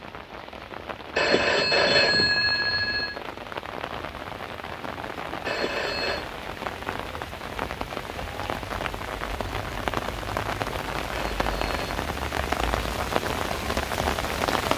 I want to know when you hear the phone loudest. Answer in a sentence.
The loudest moment of the phone is at 2 seconds.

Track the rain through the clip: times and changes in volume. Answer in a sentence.
You can hear the rain from 0.0 to 14.7 s, getting louder.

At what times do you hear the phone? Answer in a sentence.
You can hear the phone from 1.1 to 3.2 s, from 5.5 to 6.2 s and from 11.1 to 11.9 s.